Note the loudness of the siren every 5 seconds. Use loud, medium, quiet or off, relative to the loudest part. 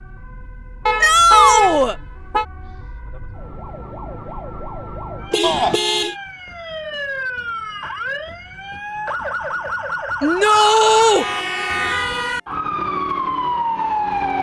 quiet, medium, loud.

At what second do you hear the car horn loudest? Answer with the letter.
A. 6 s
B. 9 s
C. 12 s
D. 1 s
D.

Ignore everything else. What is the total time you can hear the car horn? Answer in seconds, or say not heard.
4 s.